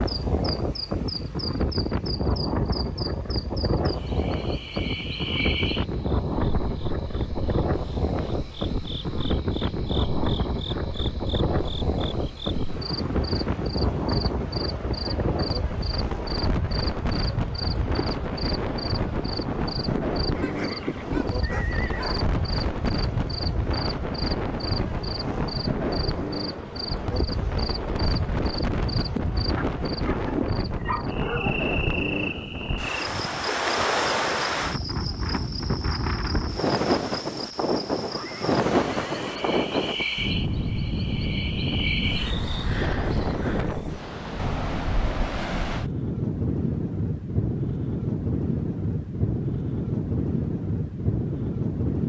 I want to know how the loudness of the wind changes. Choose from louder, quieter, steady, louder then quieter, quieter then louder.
steady.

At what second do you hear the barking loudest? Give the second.
31 s.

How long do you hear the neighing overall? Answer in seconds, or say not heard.
4 s.